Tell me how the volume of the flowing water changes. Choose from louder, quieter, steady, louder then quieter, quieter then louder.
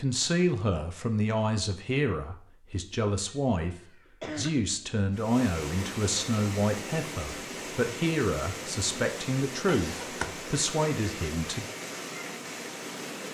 steady.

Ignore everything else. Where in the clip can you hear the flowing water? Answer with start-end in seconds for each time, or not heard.
5.1-13.2.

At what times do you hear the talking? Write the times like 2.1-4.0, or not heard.
0.0-3.8, 4.3-11.7.